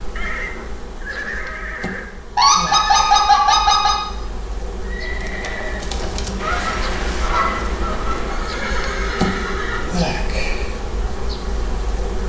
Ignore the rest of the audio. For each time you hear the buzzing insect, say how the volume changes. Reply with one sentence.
You can hear the buzzing insect from 0.0 to 12.2 s, getting louder.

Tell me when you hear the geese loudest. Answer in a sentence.
The loudest moment of the geese is at 3 seconds.